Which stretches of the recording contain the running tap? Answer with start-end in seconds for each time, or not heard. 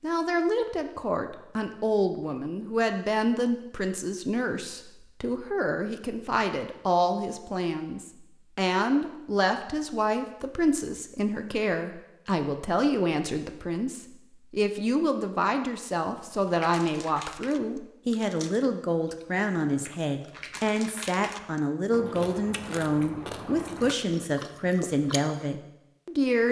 not heard.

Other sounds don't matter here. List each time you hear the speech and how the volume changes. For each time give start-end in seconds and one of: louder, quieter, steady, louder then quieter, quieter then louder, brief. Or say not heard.
0.0-26.4 steady.